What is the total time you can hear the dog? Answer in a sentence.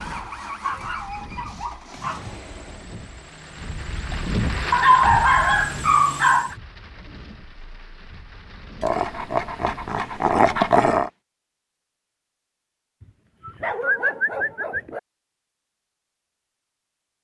You can hear the dog for 8 seconds altogether.